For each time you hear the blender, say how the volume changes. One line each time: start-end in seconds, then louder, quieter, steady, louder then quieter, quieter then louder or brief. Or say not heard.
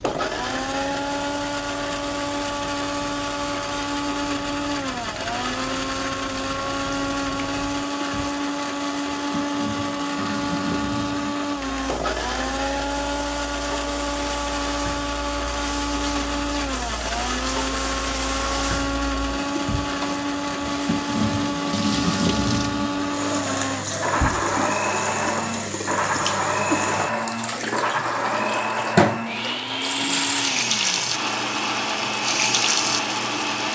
0.0-33.7 steady.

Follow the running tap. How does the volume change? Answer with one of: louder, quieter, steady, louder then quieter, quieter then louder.
louder.